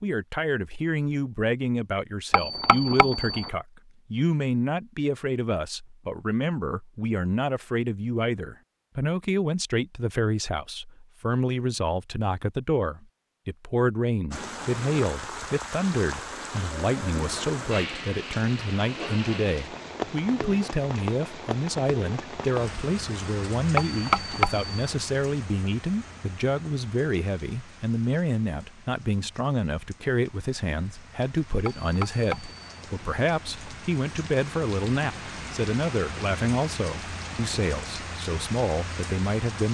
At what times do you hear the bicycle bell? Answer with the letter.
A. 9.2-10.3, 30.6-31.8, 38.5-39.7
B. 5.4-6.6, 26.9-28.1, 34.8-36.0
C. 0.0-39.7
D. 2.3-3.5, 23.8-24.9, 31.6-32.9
D.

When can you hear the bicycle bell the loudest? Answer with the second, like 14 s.
24 s.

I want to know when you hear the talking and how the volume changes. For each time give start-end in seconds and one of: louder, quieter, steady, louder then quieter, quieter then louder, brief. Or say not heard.
0.0-39.7 steady.